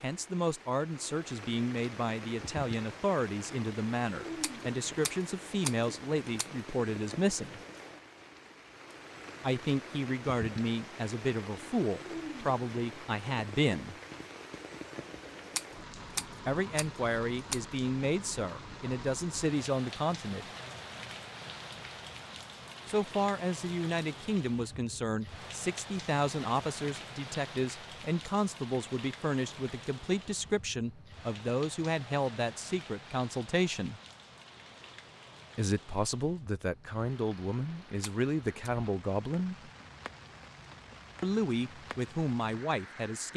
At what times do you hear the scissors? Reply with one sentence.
The scissors can be heard from 4.4 to 6.5 s, from 15.6 to 17.6 s and from 38.0 to 38.7 s.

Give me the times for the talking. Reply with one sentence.
The talking can be heard from 0.0 to 7.6 s, from 9.4 to 13.9 s, from 16.4 to 20.4 s, from 22.9 to 34.0 s, from 35.5 to 39.7 s and from 41.2 to 43.3 s.